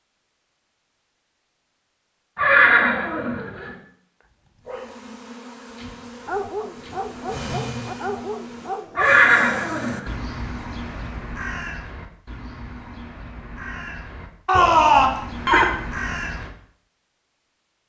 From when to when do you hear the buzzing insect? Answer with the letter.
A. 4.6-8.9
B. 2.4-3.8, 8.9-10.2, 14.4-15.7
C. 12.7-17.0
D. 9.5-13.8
A.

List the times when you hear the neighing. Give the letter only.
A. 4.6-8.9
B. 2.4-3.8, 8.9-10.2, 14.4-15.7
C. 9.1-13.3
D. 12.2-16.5
B.